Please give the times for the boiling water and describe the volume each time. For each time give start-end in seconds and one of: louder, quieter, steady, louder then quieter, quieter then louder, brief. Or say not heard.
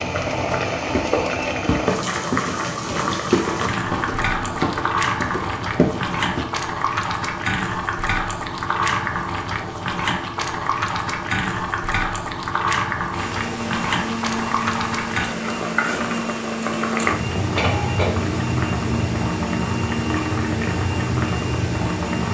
0.0-22.2 steady.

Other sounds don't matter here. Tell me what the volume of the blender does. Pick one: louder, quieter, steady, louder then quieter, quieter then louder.
steady.